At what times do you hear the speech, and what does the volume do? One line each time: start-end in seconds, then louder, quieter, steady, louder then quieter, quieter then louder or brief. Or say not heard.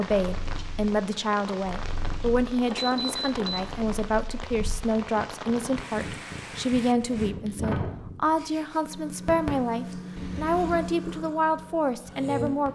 0.0-12.6 steady.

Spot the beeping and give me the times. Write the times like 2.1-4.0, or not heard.
2.6-3.5, 10.2-10.9.